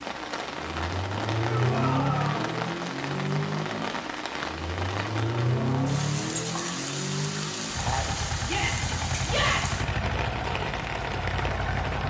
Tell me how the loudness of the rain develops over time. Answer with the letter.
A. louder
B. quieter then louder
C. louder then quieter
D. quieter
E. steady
E.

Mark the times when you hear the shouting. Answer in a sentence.
You can hear the shouting from 1.4 to 2.5 s and from 8.4 to 9.8 s.